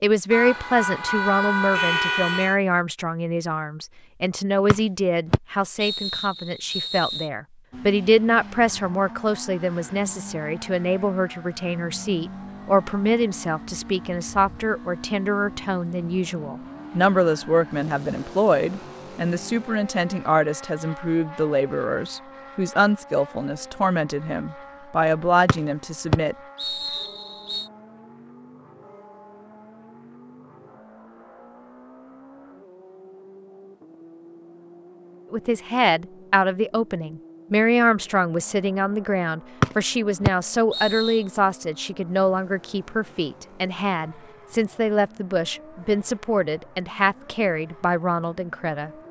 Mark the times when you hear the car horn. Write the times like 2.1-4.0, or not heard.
0.3-2.5.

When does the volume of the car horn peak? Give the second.
2 s.